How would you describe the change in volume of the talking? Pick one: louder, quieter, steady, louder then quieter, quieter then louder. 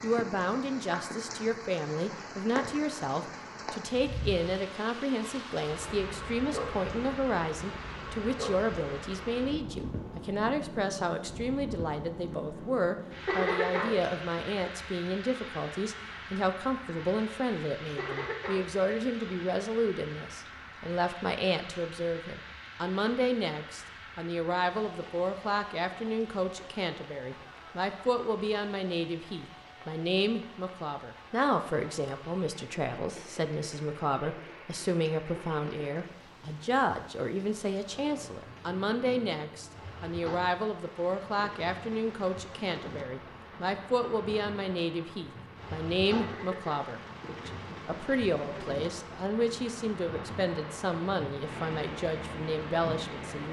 steady.